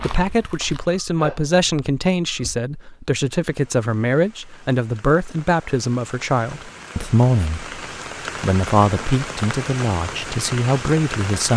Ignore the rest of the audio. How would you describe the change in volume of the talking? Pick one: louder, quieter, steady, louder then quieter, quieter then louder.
steady.